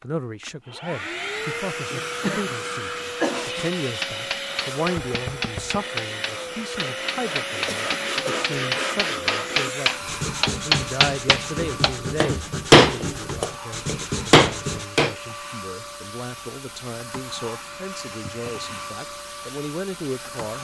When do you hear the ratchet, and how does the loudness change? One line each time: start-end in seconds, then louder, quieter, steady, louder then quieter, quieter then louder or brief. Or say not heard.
not heard.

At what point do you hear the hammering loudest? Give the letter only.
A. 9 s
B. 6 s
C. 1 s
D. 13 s
D.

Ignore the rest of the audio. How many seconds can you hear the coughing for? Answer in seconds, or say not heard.
3 s.